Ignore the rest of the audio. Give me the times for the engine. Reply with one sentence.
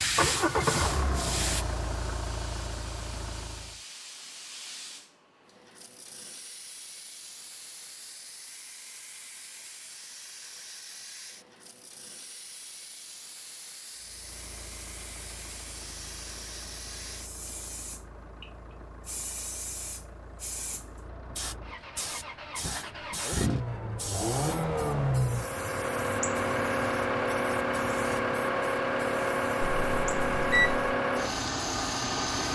The engine can be heard from 0.0 to 3.8 s and from 13.9 to 32.5 s.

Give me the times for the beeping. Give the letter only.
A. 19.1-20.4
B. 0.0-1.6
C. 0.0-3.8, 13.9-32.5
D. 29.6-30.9
D.